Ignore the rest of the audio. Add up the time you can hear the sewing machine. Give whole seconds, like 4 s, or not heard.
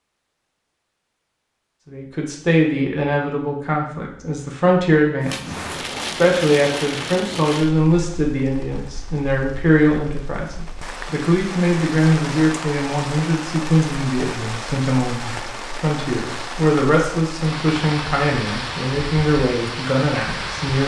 not heard.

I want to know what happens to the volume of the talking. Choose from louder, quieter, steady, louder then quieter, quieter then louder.
steady.